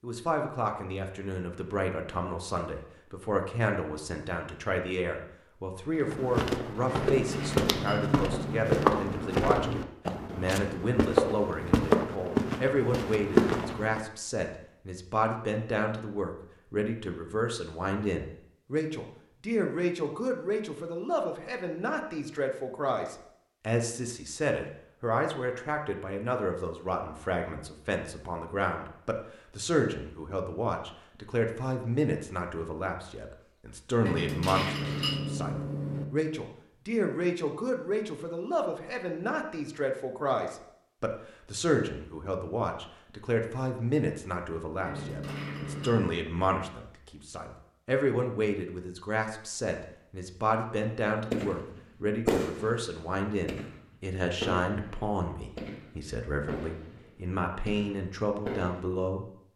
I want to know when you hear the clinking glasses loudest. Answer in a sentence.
The loudest moment of the clinking glasses is at 35 seconds.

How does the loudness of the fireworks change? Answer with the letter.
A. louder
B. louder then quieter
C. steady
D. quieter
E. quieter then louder
D.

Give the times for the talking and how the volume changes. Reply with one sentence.
The talking can be heard from 0.0 to 59.2 s, at a steady volume.